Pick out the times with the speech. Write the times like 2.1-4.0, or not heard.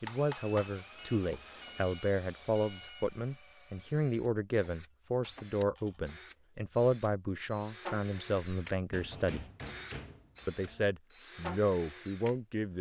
0.0-9.4, 10.4-12.7.